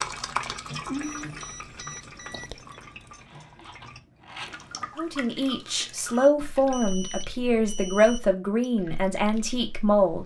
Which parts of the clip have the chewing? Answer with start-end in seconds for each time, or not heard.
0.2-4.8.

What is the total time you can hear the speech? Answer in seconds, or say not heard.
5 s.